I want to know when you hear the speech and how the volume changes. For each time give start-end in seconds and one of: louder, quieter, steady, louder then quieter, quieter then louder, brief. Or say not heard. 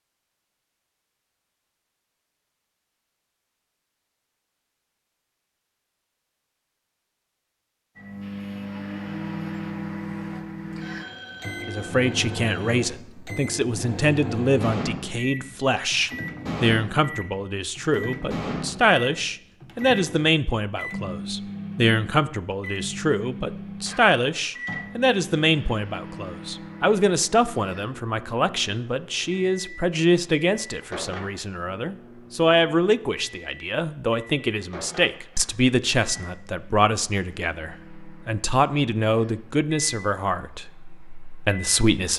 11.7-42.1 steady.